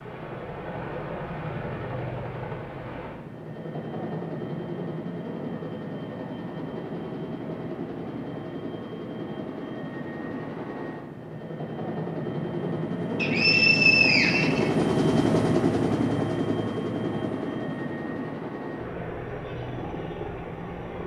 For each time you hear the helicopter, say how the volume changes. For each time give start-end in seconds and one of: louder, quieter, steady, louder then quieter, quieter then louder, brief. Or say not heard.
0.0-21.0 louder then quieter.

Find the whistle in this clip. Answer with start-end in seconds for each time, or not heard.
13.2-14.7.